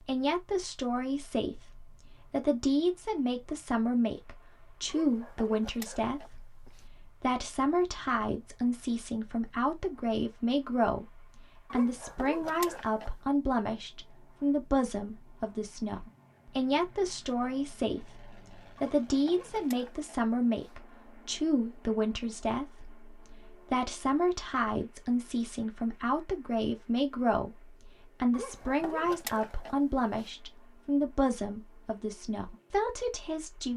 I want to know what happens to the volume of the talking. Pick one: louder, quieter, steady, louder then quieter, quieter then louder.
steady.